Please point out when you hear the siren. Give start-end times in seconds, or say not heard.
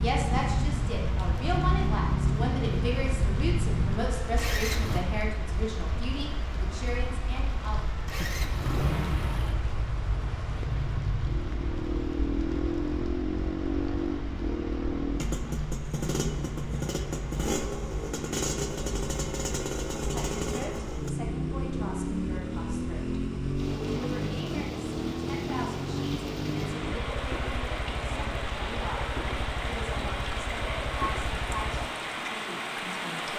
not heard.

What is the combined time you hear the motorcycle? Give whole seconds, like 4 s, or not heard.
29 s.